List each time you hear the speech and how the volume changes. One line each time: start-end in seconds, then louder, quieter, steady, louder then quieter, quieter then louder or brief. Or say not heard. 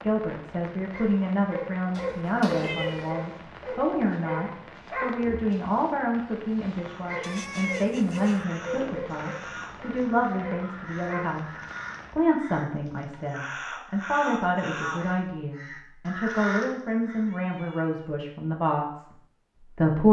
0.0-20.0 steady.